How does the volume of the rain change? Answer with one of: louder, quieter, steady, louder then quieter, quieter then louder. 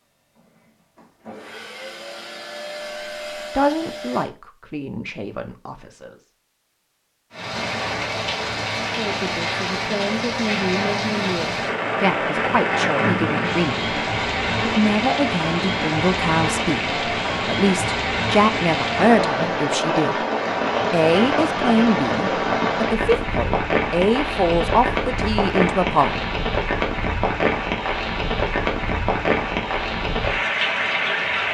steady.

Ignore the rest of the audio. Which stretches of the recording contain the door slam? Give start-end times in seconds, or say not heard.
not heard.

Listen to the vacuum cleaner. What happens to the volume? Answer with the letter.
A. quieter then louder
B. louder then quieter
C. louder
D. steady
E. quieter
C.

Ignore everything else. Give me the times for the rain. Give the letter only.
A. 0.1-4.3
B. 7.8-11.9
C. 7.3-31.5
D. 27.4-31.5
C.